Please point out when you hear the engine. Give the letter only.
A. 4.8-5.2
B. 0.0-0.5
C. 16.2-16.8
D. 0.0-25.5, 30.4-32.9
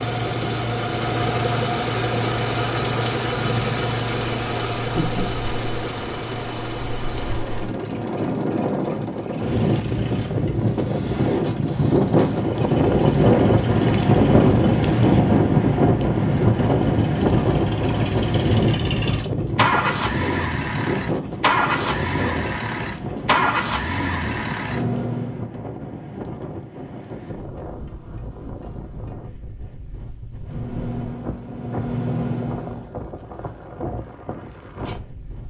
D.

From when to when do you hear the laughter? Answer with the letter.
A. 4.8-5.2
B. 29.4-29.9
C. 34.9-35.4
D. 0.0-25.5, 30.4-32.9
A.